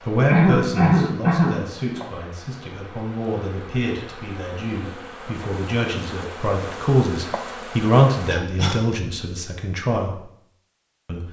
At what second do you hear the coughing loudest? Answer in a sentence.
The loudest moment of the coughing is at 1 second.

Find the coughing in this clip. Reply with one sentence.
You can hear the coughing from 0.2 to 2.0 s and from 8.3 to 8.9 s.